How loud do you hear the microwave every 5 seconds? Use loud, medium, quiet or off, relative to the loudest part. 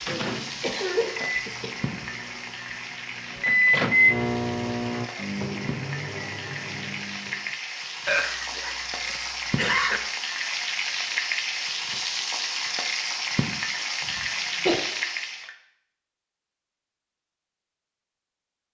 loud, medium, off, off.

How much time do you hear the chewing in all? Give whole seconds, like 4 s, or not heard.
not heard.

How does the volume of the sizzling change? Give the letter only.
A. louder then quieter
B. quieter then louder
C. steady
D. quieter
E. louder
E.